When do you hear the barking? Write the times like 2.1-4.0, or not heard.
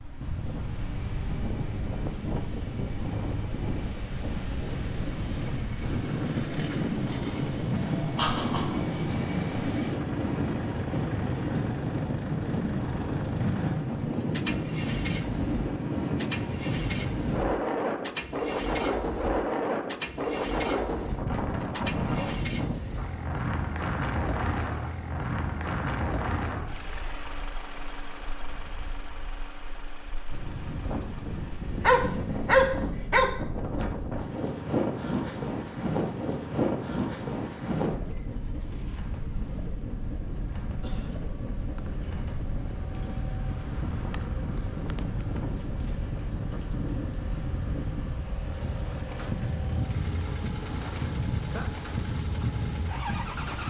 31.8-33.3.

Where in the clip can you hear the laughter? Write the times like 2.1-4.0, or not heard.
8.2-8.8, 40.8-41.2.